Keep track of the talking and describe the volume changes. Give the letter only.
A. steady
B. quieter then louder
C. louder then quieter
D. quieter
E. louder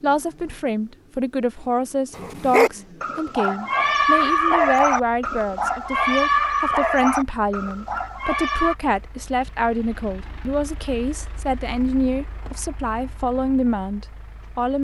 A.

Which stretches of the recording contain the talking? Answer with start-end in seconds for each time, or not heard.
0.0-14.7.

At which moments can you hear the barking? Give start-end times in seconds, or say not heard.
2.1-8.8.